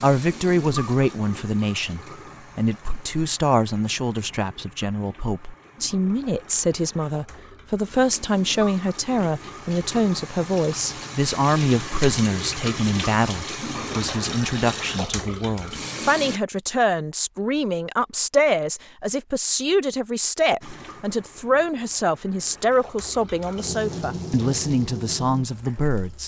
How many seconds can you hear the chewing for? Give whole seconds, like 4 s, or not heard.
not heard.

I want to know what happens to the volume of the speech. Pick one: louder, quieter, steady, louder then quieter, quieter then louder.
steady.